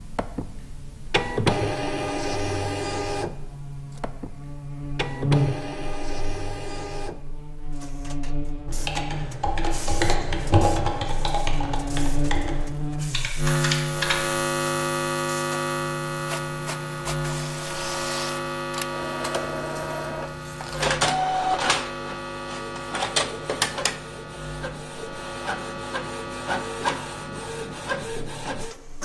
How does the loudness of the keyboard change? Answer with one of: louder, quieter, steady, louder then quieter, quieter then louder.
louder then quieter.